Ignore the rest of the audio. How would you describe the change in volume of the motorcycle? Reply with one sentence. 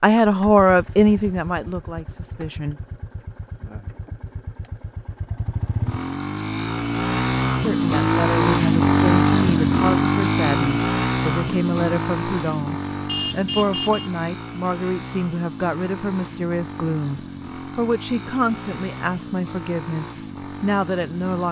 The loudness of the motorcycle goes up, then down.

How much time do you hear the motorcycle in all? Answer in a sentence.
The motorcycle can be heard for 21 seconds in total.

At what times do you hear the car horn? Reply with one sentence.
The car horn can be heard from 13.1 to 14.1 s.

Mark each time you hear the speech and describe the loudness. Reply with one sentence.
The speech can be heard briefly from 0.0 to 2.8 s; and from 7.5 to 21.4 s, at a steady volume.